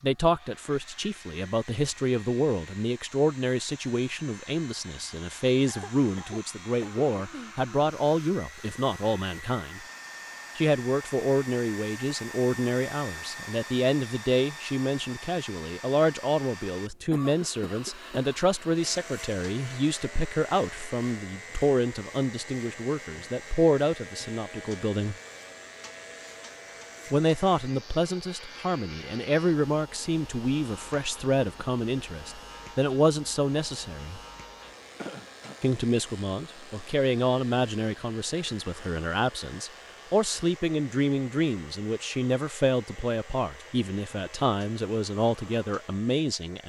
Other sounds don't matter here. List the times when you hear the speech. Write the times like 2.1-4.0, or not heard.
0.0-9.8, 10.6-25.1, 27.1-34.2, 35.6-46.6.